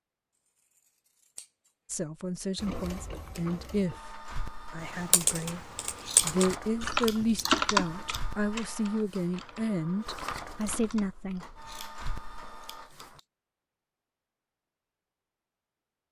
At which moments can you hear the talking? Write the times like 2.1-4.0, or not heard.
1.9-11.8.